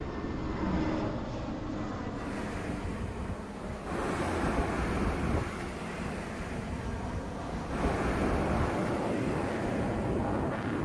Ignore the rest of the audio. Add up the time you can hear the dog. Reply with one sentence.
The dog can't be heard in this clip.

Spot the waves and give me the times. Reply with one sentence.
The waves can be heard from 2.1 to 10.7 s.